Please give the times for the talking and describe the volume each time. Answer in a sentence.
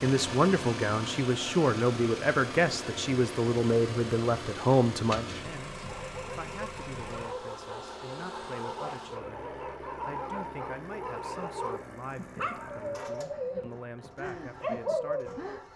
The talking can be heard from 0.0 to 15.7 s, getting quieter.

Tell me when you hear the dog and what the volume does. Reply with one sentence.
The dog can be heard from 4.9 to 15.6 s, getting louder.